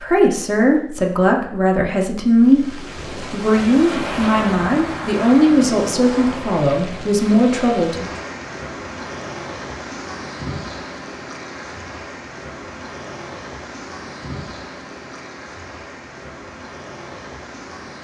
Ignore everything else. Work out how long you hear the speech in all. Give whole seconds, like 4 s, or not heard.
8 s.